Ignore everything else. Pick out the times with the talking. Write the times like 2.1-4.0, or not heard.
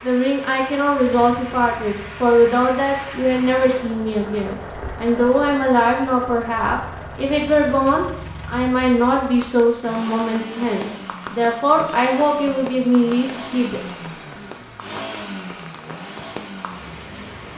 0.0-13.8.